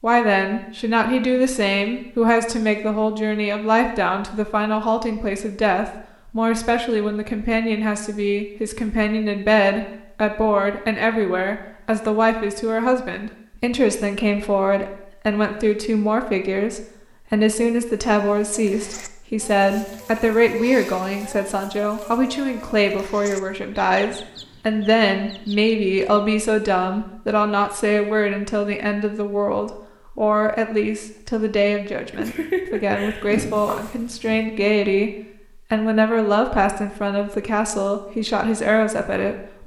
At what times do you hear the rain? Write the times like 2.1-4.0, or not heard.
not heard.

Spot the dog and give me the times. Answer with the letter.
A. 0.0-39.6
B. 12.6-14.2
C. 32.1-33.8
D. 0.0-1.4
C.